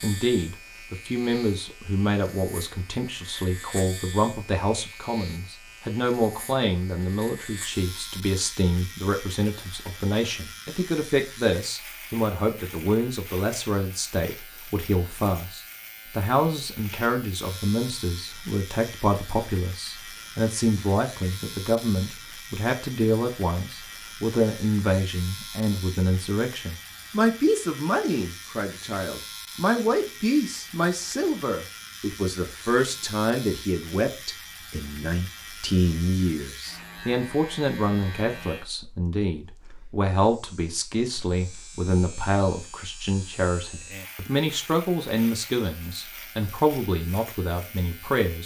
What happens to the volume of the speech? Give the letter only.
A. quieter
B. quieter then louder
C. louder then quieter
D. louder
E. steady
E.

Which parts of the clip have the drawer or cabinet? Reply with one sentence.
You can't hear the drawer or cabinet here.